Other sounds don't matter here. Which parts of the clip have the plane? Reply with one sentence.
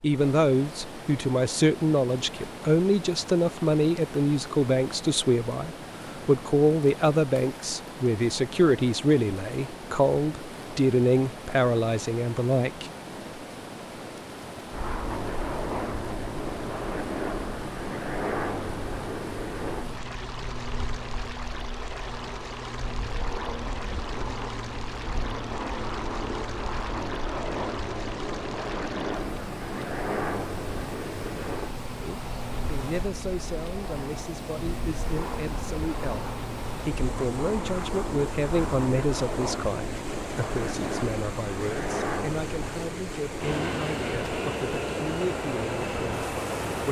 You can hear the plane from 14.7 to 46.8 s.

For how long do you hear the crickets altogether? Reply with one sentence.
The crickets can't be heard in this clip.